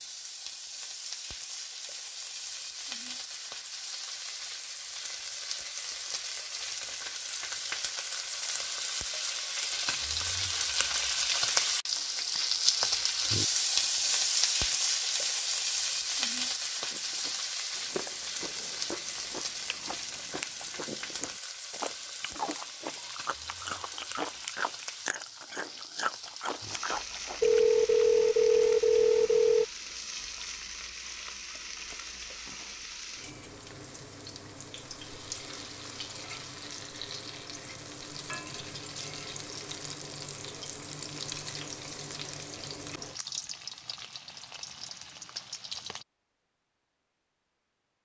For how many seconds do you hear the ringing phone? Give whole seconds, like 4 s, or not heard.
2 s.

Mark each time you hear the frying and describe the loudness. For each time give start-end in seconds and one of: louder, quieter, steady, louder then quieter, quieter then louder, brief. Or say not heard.
0.0-46.0 louder then quieter.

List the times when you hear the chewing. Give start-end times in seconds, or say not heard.
16.8-27.6.